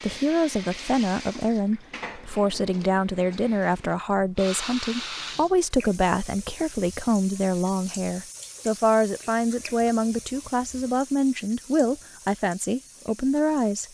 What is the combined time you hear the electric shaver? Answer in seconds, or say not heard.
not heard.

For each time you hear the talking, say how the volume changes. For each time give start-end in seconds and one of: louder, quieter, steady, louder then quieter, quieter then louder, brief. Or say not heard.
0.0-13.8 steady.